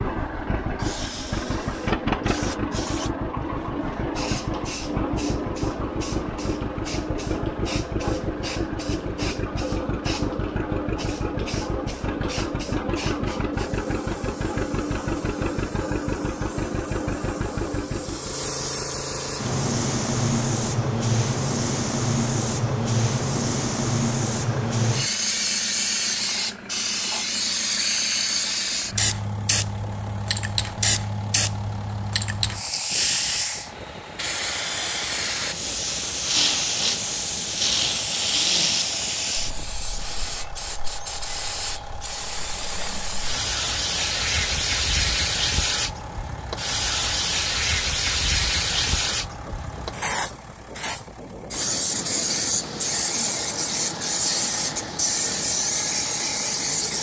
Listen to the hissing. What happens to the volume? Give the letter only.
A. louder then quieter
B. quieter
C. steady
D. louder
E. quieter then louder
D.